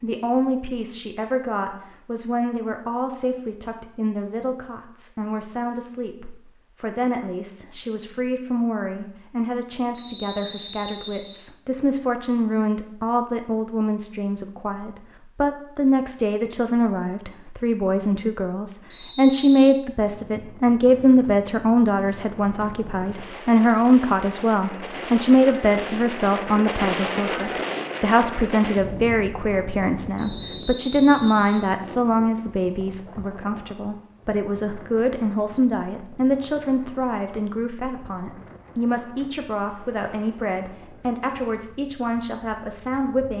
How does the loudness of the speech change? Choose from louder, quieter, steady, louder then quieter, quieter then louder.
louder then quieter.